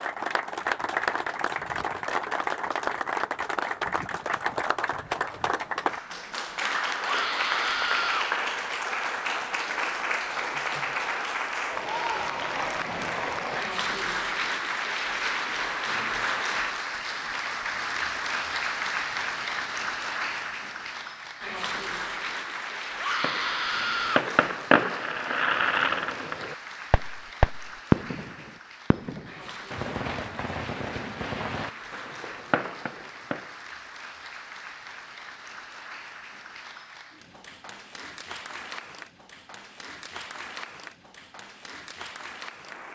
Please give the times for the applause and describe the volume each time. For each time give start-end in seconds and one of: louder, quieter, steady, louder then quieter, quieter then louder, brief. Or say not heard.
0.0-42.9 quieter.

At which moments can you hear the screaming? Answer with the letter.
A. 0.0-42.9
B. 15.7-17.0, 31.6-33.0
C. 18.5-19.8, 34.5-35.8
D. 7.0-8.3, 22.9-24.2
D.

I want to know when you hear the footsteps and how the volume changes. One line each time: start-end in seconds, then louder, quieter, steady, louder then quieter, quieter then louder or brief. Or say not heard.
not heard.